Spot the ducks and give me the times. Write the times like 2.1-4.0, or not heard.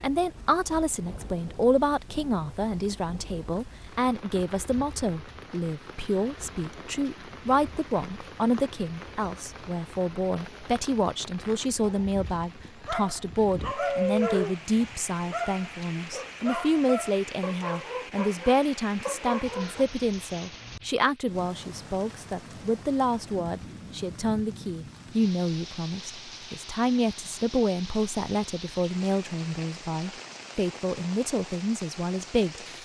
13.8-15.0.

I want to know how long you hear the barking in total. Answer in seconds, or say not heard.
8 s.